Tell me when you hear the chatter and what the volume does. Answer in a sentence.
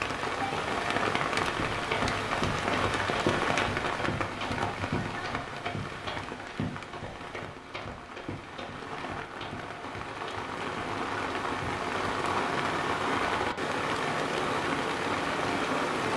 You can't hear the chatter here.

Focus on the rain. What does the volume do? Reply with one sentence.
The loudness of the rain goes down, then up.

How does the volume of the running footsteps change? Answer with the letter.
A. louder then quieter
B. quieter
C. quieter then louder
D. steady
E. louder
B.